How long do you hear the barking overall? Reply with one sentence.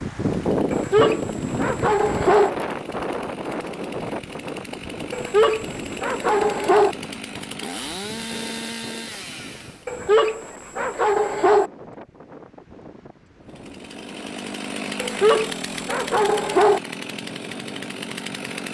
The barking can be heard for 7 seconds in total.